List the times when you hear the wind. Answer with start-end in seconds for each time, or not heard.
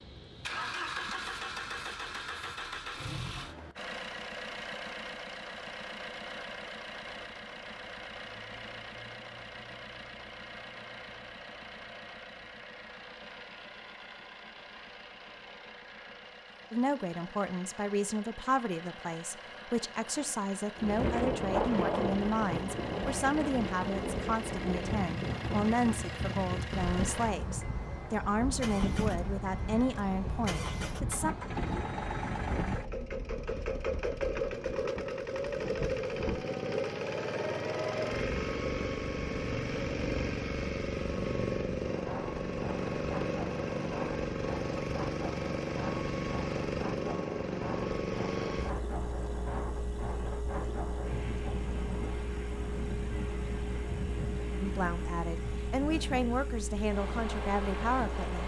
20.8-58.4.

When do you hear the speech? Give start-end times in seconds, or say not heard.
16.7-31.4, 54.6-58.4.